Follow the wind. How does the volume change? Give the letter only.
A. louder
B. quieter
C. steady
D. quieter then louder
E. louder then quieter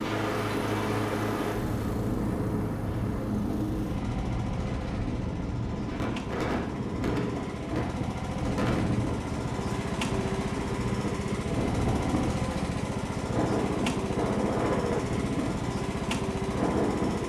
C.